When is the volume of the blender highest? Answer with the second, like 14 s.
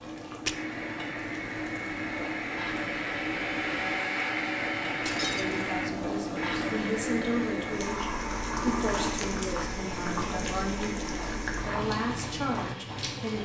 4 s.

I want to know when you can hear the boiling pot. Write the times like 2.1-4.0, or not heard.
0.0-13.4.